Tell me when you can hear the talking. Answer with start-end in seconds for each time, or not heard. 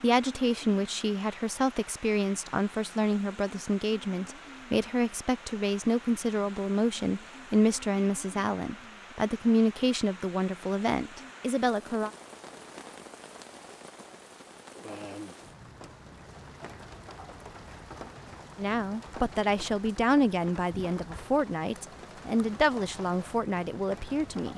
0.0-12.1, 18.6-24.5.